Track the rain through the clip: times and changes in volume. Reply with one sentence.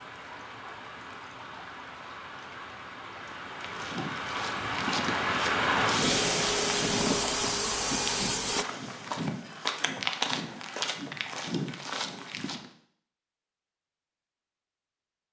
The rain can be heard from 0.0 to 9.2 s, getting louder then quieter.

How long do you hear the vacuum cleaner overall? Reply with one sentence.
The vacuum cleaner can be heard for 3 seconds in total.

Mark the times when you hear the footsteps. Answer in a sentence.
The footsteps can be heard from 3.5 to 12.7 s.